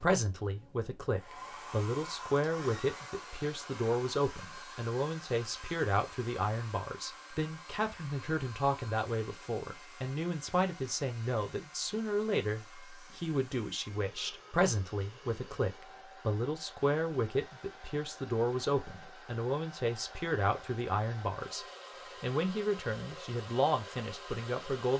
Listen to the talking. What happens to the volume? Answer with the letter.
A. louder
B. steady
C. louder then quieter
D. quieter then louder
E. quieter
B.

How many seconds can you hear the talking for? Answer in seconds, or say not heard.
25 s.